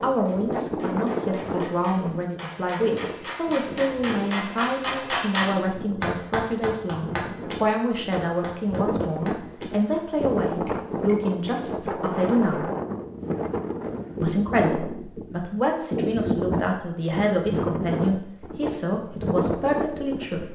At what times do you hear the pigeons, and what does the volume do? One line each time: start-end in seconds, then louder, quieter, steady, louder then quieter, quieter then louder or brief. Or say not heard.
not heard.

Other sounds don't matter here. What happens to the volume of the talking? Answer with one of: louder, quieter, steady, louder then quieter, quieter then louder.
steady.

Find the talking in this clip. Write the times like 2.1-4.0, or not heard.
0.0-12.7, 14.2-20.4.